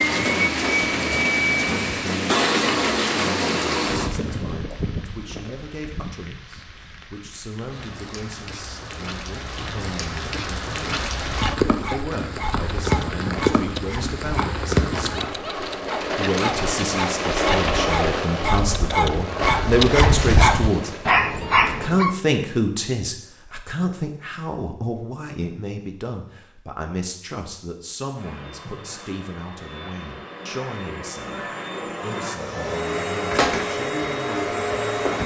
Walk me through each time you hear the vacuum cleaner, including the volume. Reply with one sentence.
The vacuum cleaner can be heard from 0.0 to 4.1 s, at a steady volume; and from 28.1 to 35.2 s, getting louder.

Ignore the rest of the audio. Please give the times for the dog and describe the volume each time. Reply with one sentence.
You can hear the dog from 11.2 to 22.1 s, getting louder.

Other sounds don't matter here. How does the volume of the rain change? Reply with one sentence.
The volume of the rain goes down, then up.